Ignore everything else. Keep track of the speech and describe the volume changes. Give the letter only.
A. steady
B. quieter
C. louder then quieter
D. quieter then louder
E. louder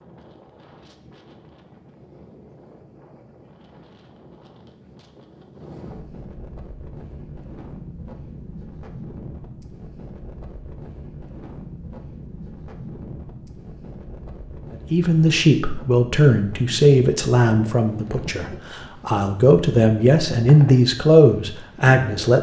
D.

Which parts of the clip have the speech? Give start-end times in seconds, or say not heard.
14.9-22.3.